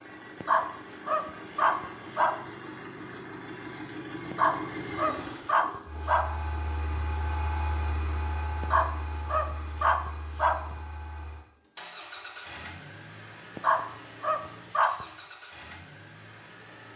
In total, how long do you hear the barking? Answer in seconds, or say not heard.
8 s.